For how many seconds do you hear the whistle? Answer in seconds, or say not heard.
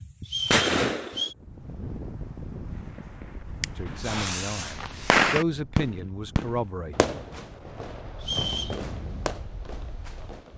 2 s.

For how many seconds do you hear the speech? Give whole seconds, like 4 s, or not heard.
3 s.